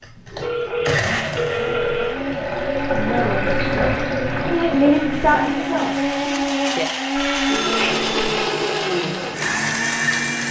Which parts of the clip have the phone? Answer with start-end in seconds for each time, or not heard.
0.4-2.2, 7.2-8.1.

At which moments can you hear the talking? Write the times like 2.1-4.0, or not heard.
2.9-6.5.